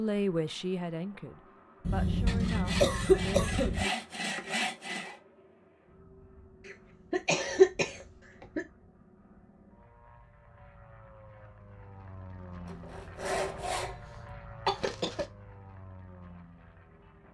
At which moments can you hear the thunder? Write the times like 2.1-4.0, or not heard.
not heard.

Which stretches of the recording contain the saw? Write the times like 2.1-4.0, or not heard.
2.2-5.2, 12.7-14.1.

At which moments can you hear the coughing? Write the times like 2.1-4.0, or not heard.
1.9-3.9, 6.7-8.7, 14.7-15.2.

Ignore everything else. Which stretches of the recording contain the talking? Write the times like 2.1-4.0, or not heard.
0.0-3.5.